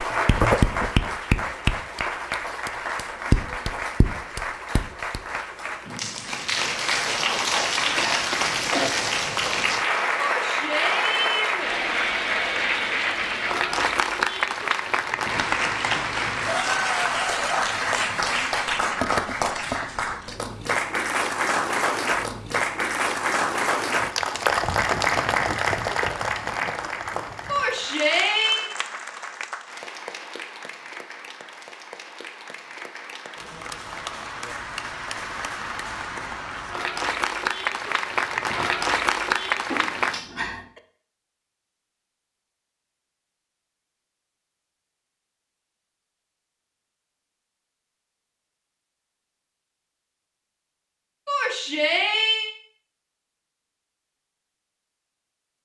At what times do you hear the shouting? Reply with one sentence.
The shouting can be heard from 10.2 to 11.7 s, from 27.4 to 28.7 s and from 51.2 to 52.5 s.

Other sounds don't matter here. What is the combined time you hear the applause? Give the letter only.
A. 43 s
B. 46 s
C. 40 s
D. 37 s
C.